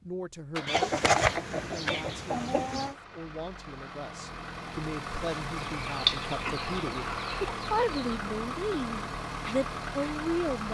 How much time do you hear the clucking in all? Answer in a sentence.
You can hear the clucking for 5 seconds altogether.